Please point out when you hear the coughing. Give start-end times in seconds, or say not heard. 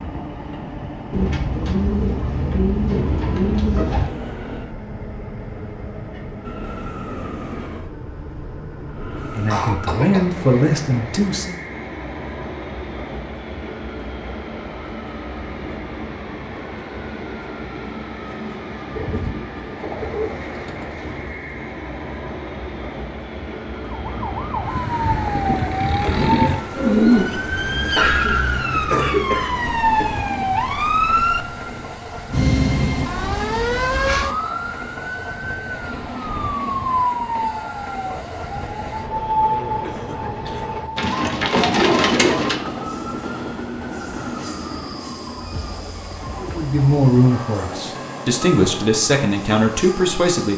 9.5-10.5, 27.8-30.2, 39.8-40.7.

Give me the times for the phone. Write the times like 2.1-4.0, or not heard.
not heard.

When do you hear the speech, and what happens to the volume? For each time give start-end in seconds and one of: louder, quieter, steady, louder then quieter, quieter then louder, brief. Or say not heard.
9.3-11.6 brief
46.4-50.5 quieter then louder.